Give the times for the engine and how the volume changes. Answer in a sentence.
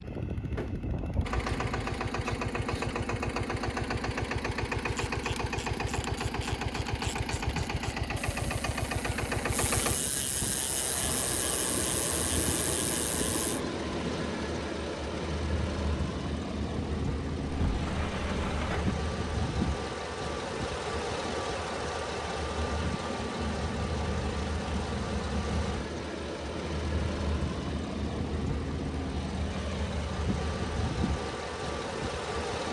You can hear the engine from 0.0 to 32.6 s, at a steady volume.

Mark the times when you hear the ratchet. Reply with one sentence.
You can hear the ratchet from 4.8 to 13.6 s.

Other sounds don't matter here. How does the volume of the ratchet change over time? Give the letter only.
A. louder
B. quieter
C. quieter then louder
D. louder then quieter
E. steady
A.